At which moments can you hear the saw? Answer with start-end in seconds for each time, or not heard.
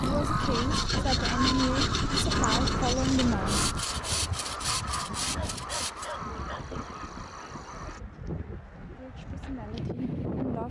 0.3-6.2.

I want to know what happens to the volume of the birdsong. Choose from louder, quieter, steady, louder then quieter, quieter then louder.
quieter.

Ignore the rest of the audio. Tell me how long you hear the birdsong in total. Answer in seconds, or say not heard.
8 s.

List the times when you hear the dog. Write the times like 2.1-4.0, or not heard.
5.3-6.8.